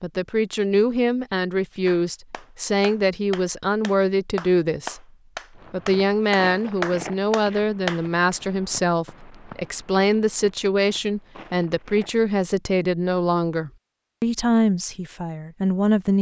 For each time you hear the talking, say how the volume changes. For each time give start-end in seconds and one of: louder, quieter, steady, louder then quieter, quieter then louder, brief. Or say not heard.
0.0-5.0 steady
5.7-16.1 steady.